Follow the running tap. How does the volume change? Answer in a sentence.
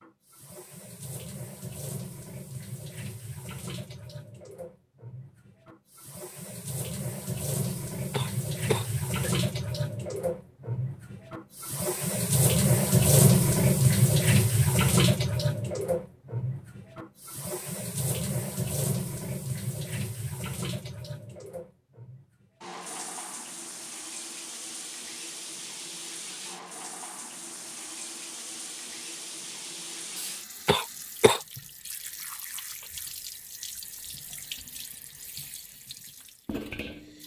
The volume of the running tap goes up, then down.